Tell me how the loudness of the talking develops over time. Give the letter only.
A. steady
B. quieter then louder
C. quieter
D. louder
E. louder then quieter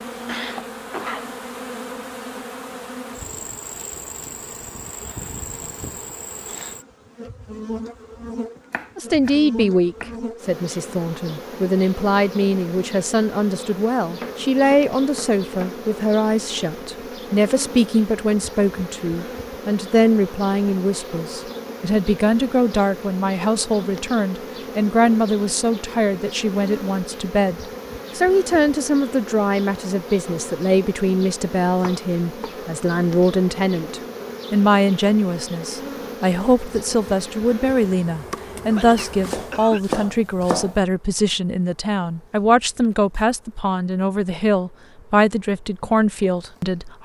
A.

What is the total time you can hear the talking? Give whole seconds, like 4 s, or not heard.
38 s.